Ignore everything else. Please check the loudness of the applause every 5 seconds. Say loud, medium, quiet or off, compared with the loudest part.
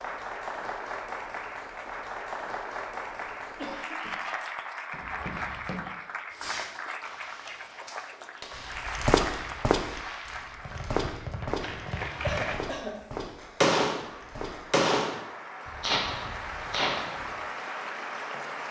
loud, loud, medium, loud.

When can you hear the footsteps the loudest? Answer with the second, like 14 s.
9 s.